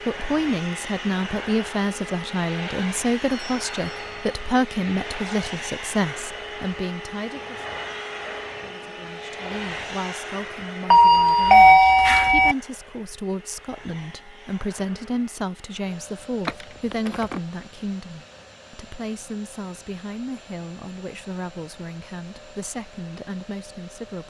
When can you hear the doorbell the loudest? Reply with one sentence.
The loudest moment of the doorbell is at 12 seconds.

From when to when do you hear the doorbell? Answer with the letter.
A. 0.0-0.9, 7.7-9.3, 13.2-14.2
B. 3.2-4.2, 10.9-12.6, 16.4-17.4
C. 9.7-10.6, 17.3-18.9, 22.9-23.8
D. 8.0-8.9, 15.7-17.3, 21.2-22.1
B.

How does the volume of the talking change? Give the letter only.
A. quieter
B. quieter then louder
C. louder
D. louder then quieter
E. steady
A.